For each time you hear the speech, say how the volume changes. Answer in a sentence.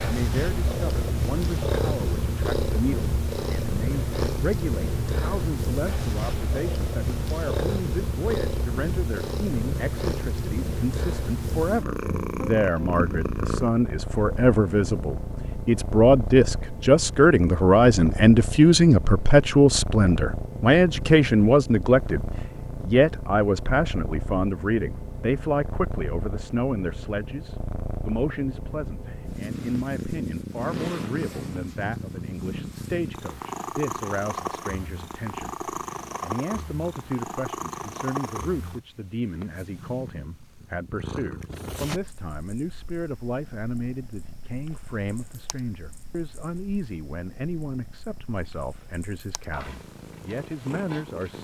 You can hear the speech from 0.0 to 51.3 s, getting louder then quieter.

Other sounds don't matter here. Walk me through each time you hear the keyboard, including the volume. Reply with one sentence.
You can't hear the keyboard here.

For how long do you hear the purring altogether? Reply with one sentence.
You can hear the purring for 51 seconds altogether.